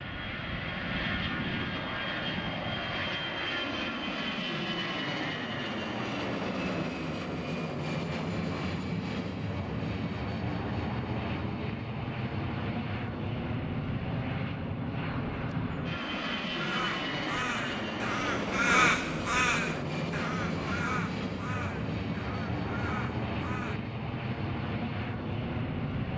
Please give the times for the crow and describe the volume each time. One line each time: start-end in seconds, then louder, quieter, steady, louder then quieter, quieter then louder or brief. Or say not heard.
16.0-23.8 louder then quieter.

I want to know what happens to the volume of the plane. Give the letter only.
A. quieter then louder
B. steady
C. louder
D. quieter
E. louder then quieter
B.